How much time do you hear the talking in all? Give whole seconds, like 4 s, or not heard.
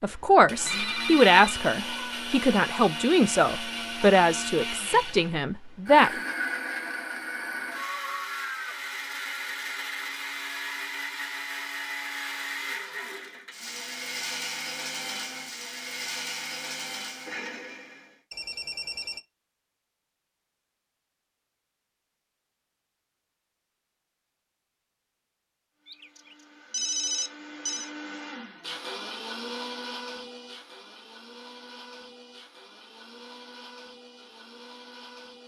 6 s.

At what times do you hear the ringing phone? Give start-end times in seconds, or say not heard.
0.7-1.6, 18.3-19.2, 25.9-27.9.